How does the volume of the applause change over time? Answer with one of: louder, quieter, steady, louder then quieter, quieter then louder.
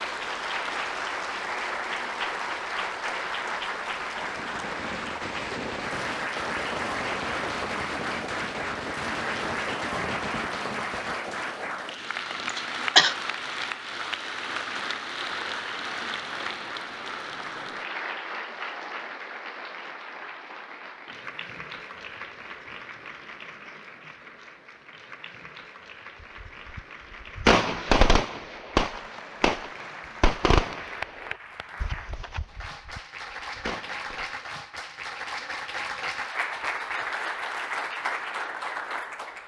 quieter then louder.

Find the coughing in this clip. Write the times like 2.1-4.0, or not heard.
12.4-13.2.